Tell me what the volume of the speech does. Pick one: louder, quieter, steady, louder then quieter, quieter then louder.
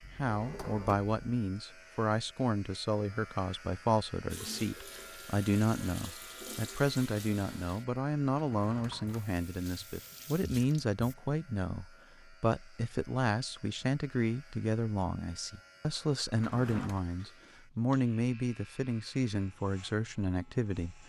steady.